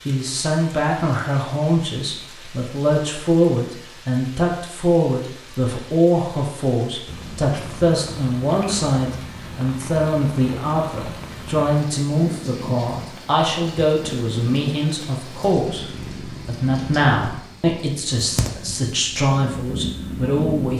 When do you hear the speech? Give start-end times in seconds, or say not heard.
0.1-20.7.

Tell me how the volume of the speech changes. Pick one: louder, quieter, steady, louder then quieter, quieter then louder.
steady.